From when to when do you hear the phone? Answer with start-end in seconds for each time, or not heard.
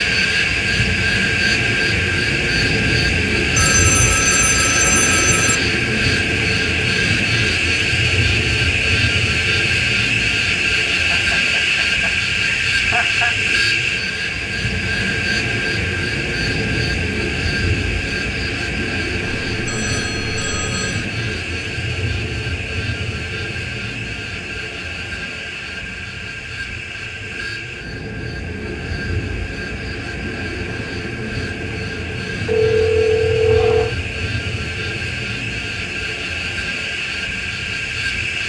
3.5-5.5, 19.4-21.1, 32.5-34.0.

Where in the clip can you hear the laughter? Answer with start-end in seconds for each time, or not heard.
10.9-13.3.